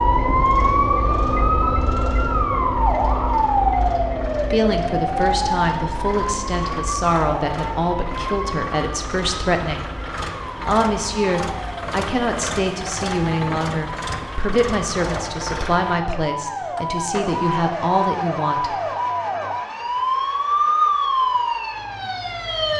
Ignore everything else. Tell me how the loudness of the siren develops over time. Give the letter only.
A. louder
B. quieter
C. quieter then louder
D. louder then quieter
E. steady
C.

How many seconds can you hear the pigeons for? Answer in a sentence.
The pigeons can't be heard in this clip.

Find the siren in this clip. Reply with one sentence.
You can hear the siren from 0.0 to 22.7 s.